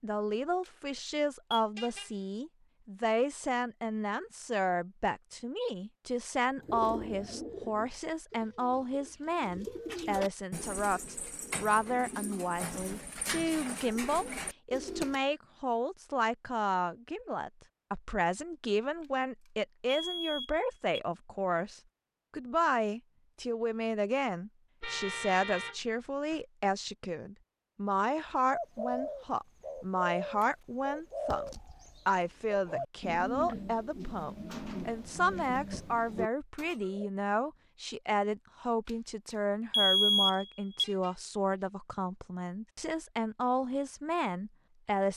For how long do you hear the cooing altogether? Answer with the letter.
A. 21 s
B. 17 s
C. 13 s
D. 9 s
B.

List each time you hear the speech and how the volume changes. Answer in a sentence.
The speech can be heard from 0.0 to 31.4 s, at a steady volume; and from 32.0 to 45.1 s, at a steady volume.